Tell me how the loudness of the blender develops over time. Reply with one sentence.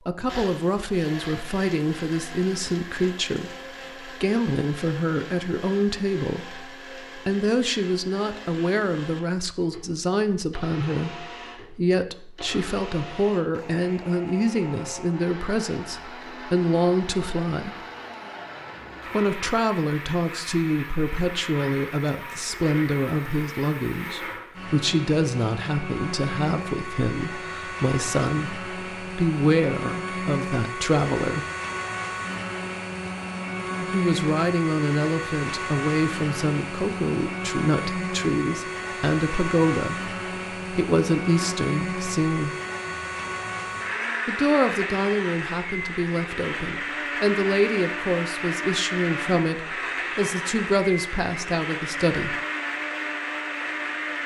The volume of the blender goes up.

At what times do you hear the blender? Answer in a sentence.
You can hear the blender from 0.0 to 54.2 s.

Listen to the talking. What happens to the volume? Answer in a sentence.
The volume of the talking stays about the same.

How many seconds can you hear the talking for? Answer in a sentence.
The talking can be heard for 47 seconds in total.